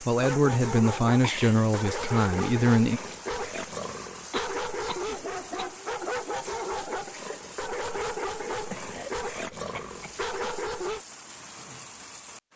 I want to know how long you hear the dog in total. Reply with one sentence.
You can hear the dog for 11 seconds altogether.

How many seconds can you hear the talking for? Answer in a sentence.
You can hear the talking for 3 seconds altogether.